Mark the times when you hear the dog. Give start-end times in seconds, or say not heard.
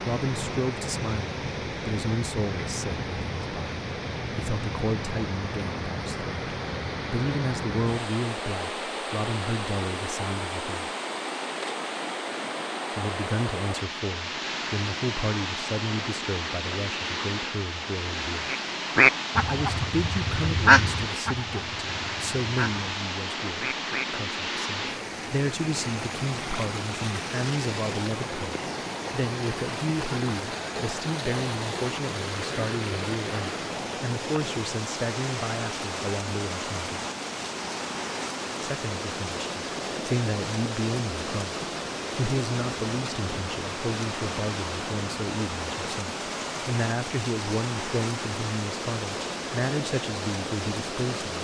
not heard.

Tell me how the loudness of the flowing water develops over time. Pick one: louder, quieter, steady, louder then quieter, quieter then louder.
steady.